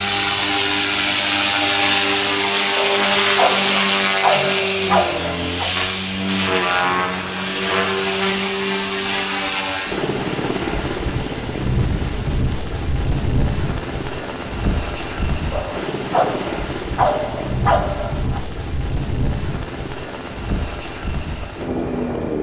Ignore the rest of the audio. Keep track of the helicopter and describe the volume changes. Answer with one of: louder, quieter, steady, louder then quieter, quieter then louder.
quieter.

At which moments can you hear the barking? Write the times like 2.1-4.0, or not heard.
2.8-5.7, 15.5-18.4.